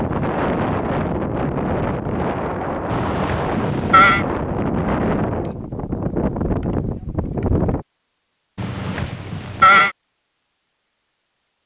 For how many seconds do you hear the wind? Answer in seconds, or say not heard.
8 s.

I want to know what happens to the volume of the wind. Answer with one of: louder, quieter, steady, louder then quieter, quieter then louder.
steady.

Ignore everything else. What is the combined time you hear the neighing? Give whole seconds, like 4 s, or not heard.
3 s.